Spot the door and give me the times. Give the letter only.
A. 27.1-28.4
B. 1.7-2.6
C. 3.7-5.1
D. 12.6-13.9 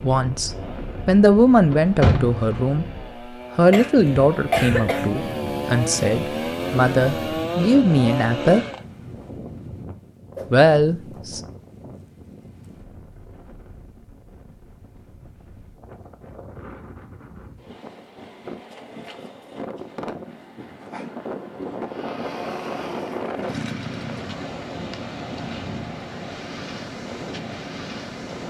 B.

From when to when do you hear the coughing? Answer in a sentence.
The coughing can be heard from 3.7 to 5.1 s.